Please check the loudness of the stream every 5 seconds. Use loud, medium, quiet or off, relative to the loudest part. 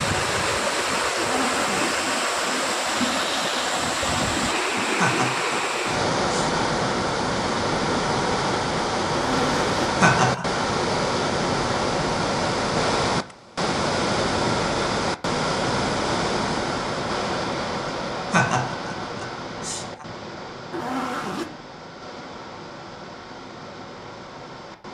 loud, loud, loud, loud, quiet.